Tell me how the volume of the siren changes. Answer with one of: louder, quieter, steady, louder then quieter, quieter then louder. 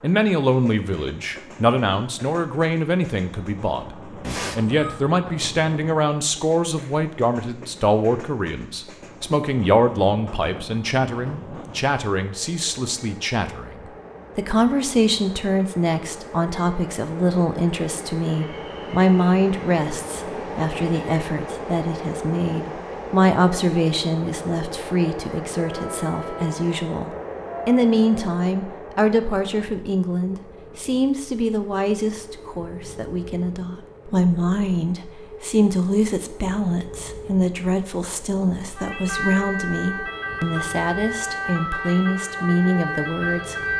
steady.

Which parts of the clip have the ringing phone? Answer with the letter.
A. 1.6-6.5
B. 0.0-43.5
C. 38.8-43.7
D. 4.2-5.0
D.